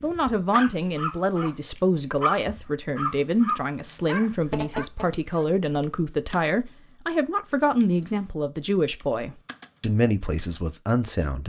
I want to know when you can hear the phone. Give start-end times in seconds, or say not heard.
4.4-5.1.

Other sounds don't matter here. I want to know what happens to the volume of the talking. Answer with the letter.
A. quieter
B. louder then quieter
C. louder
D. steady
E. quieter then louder
D.